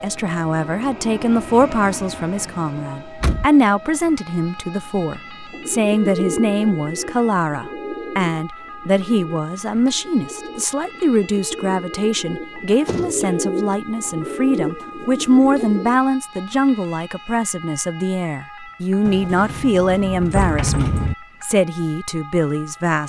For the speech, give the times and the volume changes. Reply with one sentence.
You can hear the speech from 0.0 to 23.0 s, at a steady volume.